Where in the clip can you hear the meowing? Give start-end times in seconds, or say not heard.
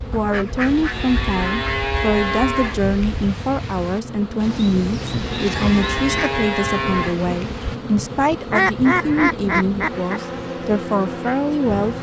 not heard.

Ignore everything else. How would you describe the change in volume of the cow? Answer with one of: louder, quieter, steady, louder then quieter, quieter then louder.
quieter then louder.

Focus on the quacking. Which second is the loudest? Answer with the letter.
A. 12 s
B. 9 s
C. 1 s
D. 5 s
B.